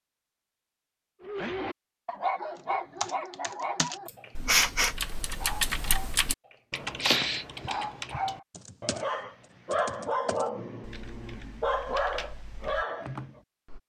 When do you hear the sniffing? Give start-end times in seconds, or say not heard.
4.0-5.0.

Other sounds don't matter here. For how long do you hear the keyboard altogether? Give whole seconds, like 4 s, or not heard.
11 s.